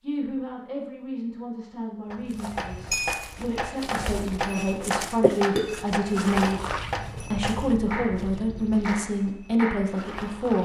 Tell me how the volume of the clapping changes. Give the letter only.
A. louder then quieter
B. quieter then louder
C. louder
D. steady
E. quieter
E.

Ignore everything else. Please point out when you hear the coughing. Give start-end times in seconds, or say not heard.
5.2-5.8.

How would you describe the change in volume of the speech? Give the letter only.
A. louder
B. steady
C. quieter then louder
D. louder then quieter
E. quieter
A.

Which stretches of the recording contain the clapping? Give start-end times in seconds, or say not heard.
2.1-10.1.